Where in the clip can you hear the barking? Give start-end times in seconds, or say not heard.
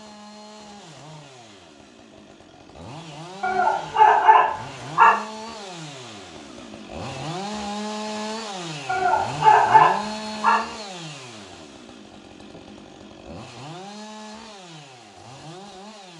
3.4-5.2, 8.8-10.6.